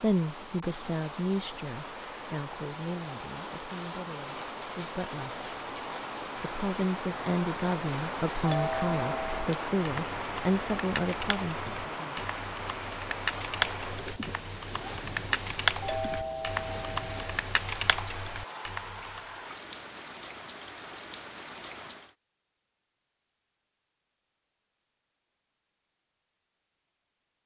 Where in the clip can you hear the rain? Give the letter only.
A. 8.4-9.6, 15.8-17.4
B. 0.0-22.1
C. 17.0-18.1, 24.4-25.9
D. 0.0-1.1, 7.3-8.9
B.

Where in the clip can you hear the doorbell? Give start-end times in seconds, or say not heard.
8.4-9.6, 15.8-17.4.